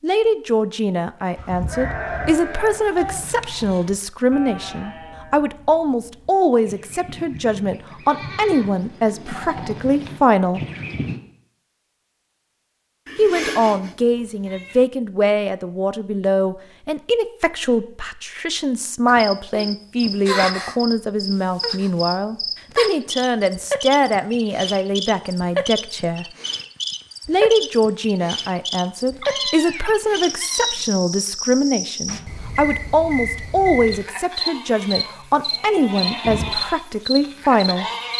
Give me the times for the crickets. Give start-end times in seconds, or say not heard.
19.1-38.1.